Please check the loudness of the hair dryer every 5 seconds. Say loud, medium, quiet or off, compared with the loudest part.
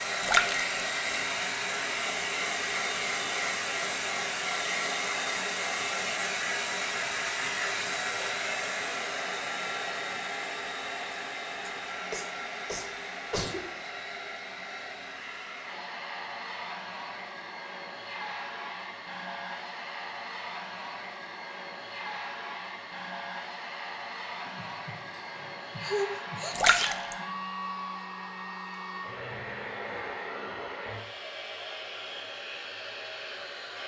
loud, loud, medium, medium, medium, medium, medium.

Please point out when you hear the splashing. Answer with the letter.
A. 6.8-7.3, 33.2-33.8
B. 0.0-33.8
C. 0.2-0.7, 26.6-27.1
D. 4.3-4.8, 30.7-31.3
C.